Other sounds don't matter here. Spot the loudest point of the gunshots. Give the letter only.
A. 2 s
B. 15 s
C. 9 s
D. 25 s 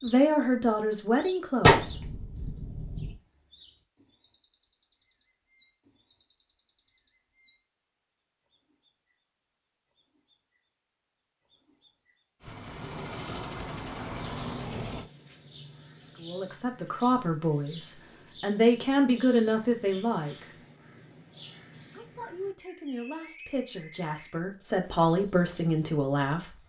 A.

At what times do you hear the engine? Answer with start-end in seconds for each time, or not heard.
12.4-15.1.